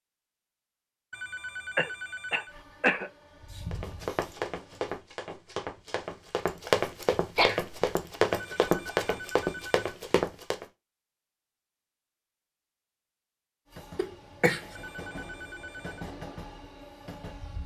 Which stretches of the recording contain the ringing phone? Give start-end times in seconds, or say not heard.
1.1-2.5, 8.3-9.8, 14.8-16.1.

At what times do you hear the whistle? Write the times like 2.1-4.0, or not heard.
not heard.